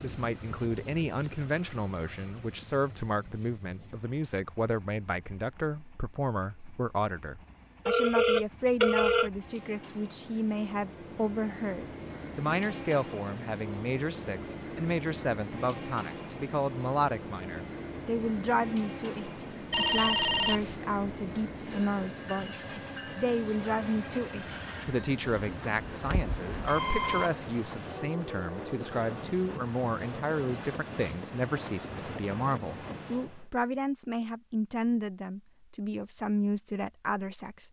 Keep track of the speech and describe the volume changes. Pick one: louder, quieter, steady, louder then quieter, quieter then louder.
steady.